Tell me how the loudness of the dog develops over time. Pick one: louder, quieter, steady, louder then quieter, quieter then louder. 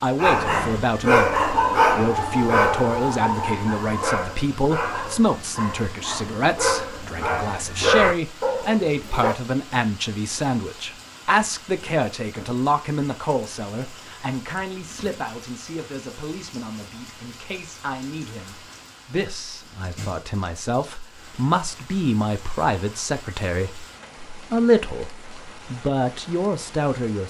quieter then louder.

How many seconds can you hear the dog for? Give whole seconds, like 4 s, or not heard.
9 s.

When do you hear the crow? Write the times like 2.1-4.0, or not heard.
not heard.